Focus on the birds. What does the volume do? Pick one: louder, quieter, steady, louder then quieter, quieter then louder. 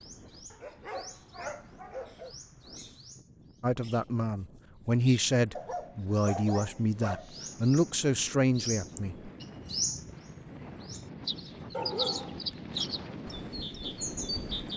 louder.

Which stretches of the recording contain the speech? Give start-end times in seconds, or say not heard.
3.6-9.3.